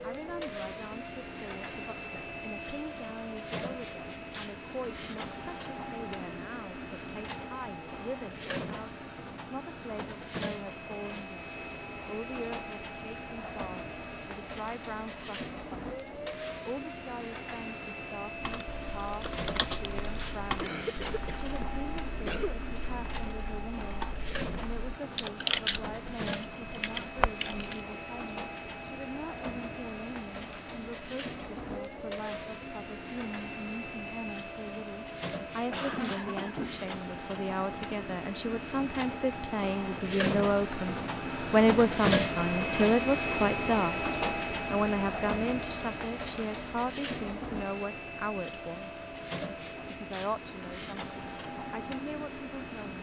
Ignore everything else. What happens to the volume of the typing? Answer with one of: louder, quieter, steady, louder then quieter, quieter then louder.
quieter then louder.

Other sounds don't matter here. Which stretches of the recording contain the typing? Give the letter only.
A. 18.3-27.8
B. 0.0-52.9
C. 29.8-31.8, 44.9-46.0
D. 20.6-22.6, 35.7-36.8
A.